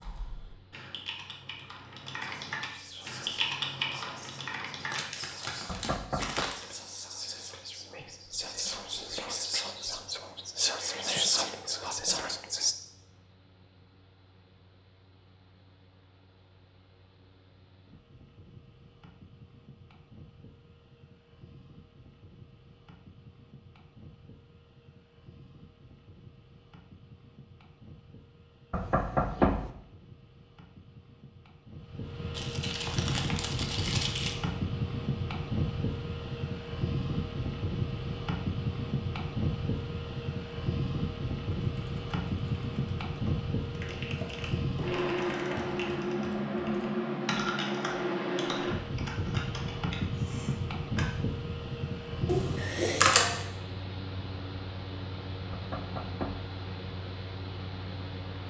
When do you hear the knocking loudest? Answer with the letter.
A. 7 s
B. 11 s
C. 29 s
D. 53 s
C.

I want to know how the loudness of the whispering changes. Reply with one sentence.
The volume of the whispering goes up.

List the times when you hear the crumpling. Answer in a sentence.
You can hear the crumpling from 4.9 to 6.7 s, from 32.3 to 34.4 s and from 52.2 to 53.5 s.